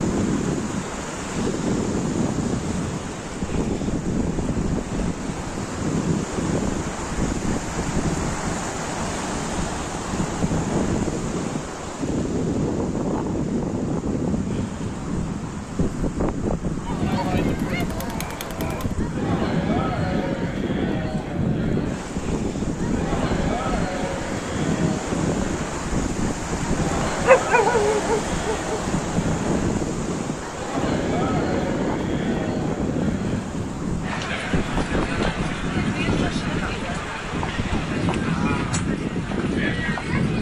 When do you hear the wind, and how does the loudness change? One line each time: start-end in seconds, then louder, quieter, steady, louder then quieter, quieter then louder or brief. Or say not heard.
0.0-40.3 steady.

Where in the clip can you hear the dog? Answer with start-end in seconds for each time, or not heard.
27.2-28.7.